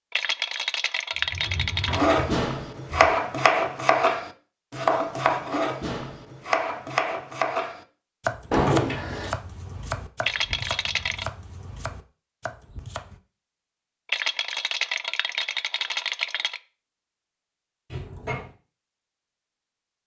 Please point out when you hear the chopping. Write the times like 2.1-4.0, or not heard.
1.9-13.2.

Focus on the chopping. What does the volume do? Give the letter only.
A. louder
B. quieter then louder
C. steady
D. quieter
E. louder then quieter
D.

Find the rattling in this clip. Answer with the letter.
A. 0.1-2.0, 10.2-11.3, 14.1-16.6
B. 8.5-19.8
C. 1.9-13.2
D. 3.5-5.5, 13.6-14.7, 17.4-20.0
A.